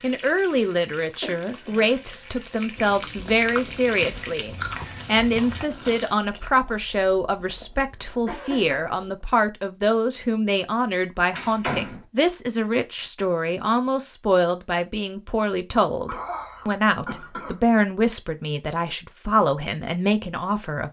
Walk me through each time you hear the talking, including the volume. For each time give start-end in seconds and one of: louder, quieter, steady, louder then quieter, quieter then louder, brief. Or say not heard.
0.0-20.8 steady.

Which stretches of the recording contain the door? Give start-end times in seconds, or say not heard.
11.3-12.1.